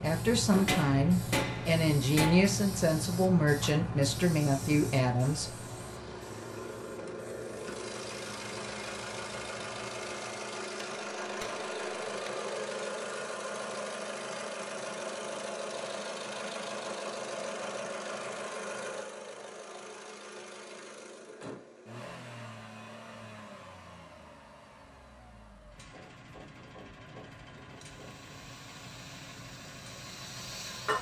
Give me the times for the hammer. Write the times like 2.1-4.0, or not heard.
0.7-2.6, 10.8-12.6, 25.9-28.1.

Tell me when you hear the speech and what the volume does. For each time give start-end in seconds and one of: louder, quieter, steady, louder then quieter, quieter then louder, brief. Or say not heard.
0.0-5.5 steady.